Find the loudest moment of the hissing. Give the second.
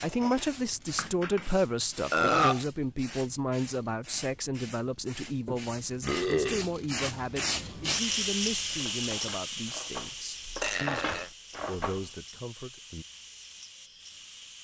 8 s.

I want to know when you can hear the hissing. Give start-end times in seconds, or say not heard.
0.0-14.5.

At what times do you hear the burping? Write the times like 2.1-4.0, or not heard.
2.1-2.6, 5.5-6.7, 10.6-11.3.